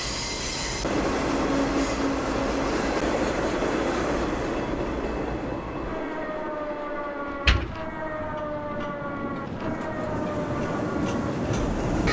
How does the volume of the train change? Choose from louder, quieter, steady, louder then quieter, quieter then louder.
quieter then louder.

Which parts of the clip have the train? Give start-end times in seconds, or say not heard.
0.0-12.0.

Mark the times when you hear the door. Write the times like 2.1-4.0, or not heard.
7.2-8.3.